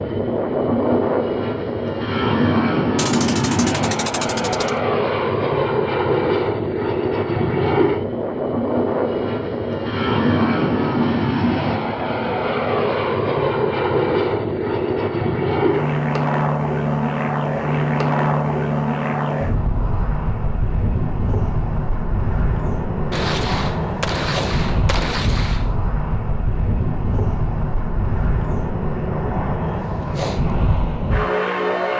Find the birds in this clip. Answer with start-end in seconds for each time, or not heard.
not heard.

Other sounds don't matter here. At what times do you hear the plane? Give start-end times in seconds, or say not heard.
0.0-31.9.